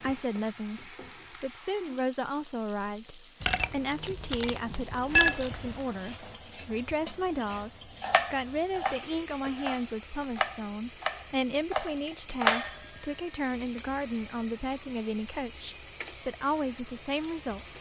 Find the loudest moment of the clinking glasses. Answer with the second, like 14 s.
5 s.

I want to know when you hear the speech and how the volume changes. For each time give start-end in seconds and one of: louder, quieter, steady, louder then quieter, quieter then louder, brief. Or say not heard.
0.0-17.7 steady.